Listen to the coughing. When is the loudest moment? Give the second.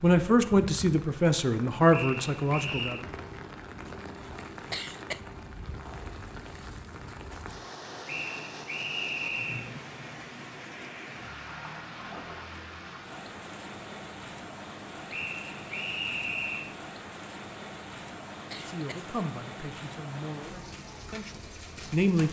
5 s.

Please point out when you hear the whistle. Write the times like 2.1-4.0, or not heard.
1.9-3.0, 8.1-9.7, 15.1-16.8.